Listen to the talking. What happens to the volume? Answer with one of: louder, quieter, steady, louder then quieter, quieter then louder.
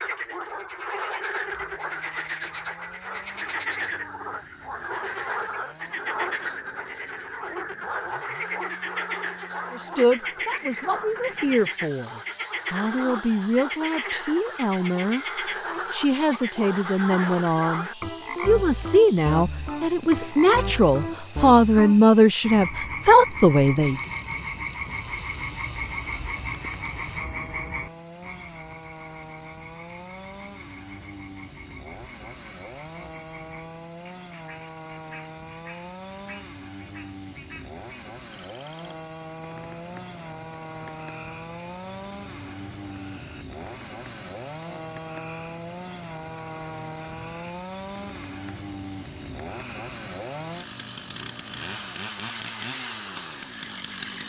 louder.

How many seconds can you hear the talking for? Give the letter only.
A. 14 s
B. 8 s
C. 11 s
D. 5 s
A.